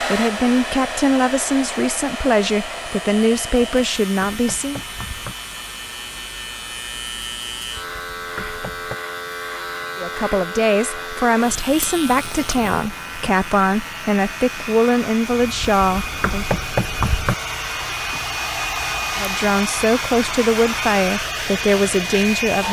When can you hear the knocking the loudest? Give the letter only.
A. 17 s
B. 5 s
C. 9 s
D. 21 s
A.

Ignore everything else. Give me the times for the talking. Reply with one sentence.
The talking can be heard from 0.0 to 4.8 s, from 9.9 to 16.5 s and from 19.1 to 22.6 s.